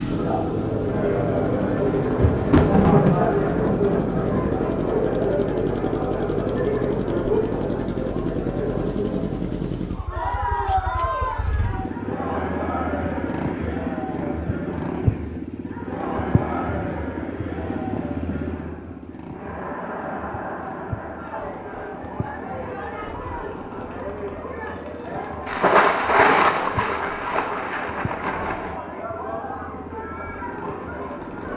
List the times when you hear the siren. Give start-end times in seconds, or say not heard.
not heard.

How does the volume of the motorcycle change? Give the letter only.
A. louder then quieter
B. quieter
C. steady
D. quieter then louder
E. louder
B.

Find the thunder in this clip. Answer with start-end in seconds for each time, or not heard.
1.9-4.5, 25.4-28.8.